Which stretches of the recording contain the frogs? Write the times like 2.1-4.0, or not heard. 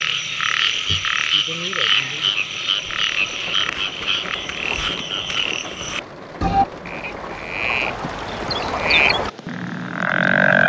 0.0-10.6.